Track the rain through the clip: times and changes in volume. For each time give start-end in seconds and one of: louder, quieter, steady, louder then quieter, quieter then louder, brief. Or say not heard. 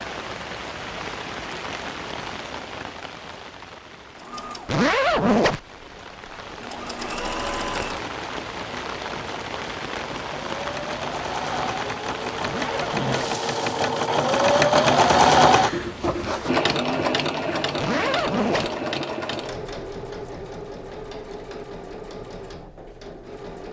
0.0-13.9 quieter then louder.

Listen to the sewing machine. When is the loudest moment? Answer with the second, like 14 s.
15 s.